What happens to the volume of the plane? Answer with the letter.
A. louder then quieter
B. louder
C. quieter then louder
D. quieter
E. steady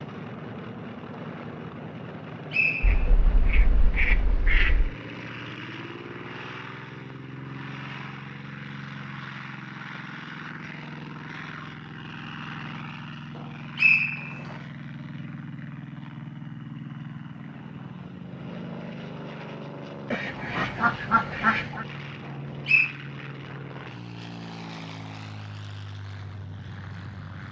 E.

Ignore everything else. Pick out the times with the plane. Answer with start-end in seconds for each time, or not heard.
0.0-27.4.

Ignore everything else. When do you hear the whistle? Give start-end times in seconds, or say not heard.
2.1-3.0, 13.3-14.6, 22.2-22.9.